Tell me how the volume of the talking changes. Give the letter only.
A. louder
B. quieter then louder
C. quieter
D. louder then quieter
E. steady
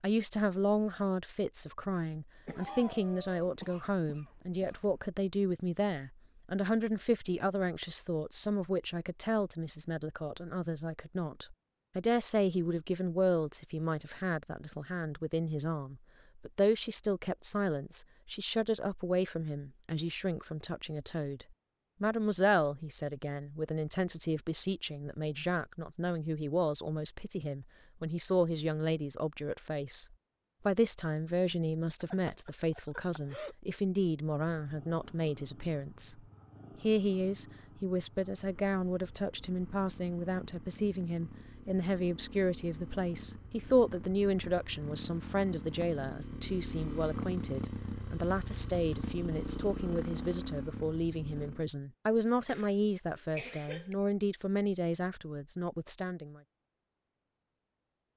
E.